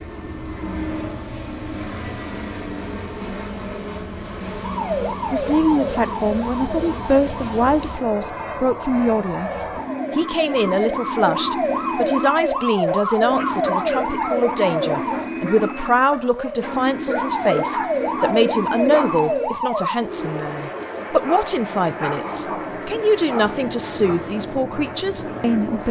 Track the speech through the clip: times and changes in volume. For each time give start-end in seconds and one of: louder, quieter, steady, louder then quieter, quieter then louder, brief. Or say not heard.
5.3-25.8 steady.